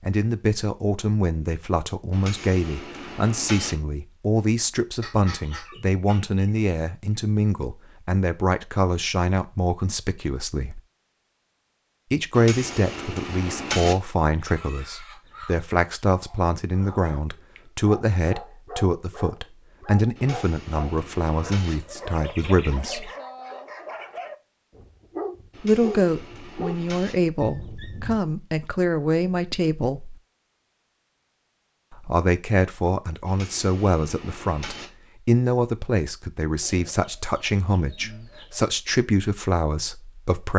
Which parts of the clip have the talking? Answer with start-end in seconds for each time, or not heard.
0.0-10.8, 12.1-23.1, 25.6-30.2, 31.9-40.5.